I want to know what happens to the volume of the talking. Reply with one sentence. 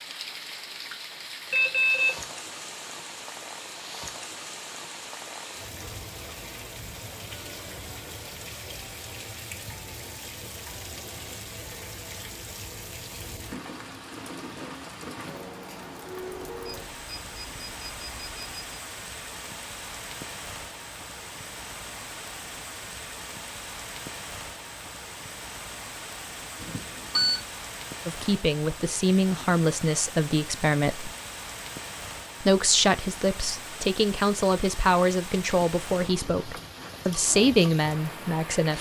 The volume of the talking stays about the same.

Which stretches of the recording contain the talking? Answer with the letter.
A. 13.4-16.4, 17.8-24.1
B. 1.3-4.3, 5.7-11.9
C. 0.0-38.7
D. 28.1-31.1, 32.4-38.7
D.